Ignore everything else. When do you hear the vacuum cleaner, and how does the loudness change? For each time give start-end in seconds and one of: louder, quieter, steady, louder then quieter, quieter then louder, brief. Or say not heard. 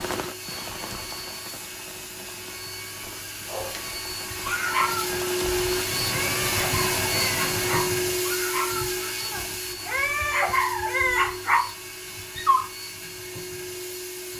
0.0-14.3 louder then quieter.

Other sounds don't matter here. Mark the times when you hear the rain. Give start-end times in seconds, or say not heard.
0.0-8.2.